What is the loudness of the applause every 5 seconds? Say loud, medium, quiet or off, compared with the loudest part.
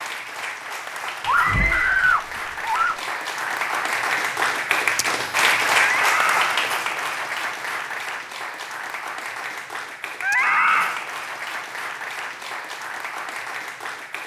loud, loud, medium.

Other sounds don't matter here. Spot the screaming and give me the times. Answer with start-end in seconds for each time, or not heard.
1.2-3.0, 5.8-6.6, 10.2-11.0.